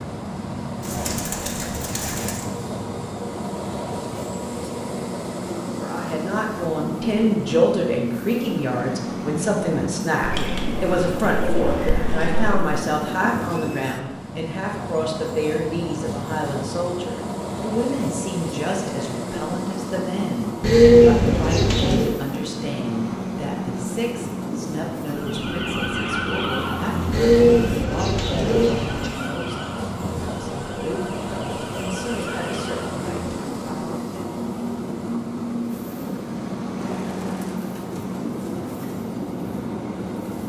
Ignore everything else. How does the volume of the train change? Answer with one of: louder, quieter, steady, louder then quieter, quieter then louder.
steady.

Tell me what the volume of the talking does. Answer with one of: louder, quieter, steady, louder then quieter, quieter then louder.
quieter.